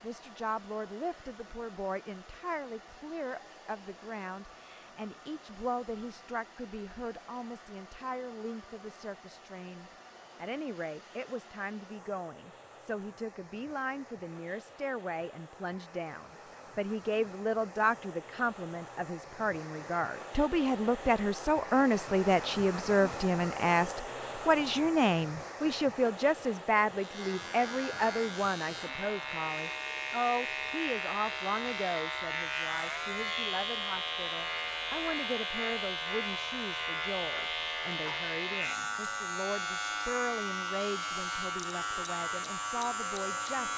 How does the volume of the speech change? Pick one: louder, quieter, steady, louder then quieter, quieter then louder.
louder then quieter.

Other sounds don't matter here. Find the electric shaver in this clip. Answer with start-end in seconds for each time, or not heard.
26.9-43.7.